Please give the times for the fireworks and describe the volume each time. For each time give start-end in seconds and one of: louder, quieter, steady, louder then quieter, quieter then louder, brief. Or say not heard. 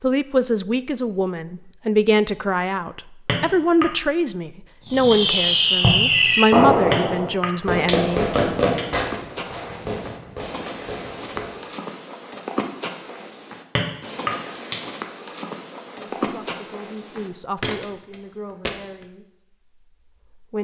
4.9-11.7 quieter.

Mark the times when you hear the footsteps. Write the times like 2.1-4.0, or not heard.
9.0-19.1.